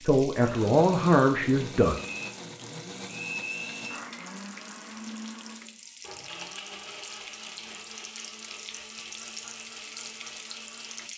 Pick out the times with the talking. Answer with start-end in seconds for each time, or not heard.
0.0-1.9.